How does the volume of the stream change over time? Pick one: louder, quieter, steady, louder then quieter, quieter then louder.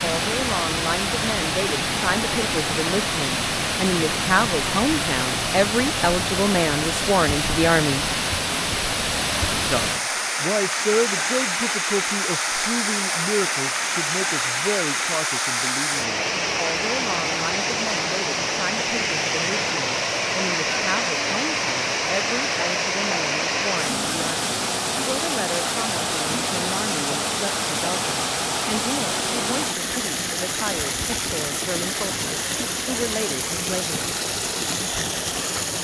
steady.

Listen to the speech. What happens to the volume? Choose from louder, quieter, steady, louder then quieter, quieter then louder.
quieter.